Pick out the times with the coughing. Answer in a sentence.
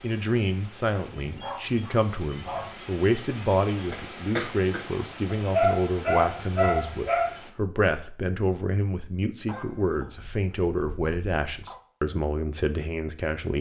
The coughing can be heard from 3.9 to 4.9 s.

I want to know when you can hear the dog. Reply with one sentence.
The dog can be heard from 0.9 to 2.8 s, from 5.5 to 7.3 s and from 9.4 to 11.8 s.